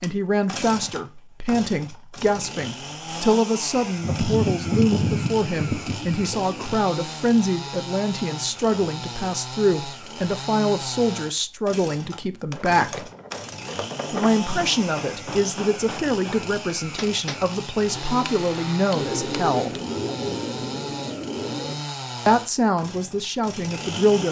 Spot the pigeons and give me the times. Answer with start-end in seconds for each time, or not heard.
4.0-6.8, 18.9-21.8.